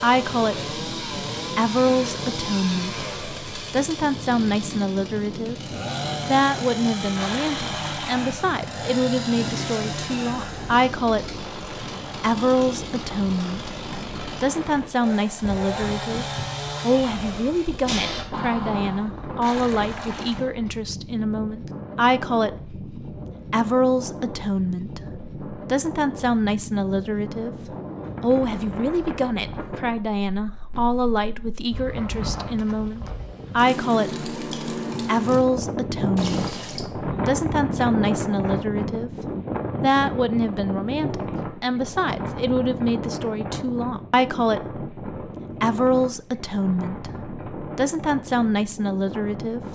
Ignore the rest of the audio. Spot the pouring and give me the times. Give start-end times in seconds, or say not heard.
7.2-8.3, 19.4-20.5, 36.1-36.9.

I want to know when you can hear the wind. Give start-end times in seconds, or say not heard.
0.0-49.7.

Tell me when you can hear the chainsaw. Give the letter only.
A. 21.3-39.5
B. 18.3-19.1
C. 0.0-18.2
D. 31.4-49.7
C.